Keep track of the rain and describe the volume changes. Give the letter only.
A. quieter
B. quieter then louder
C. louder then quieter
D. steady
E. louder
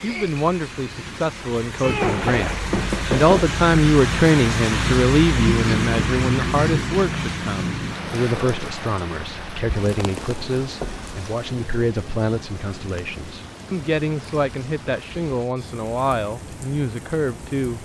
C.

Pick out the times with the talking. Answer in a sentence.
You can hear the talking from 0.0 to 17.7 s.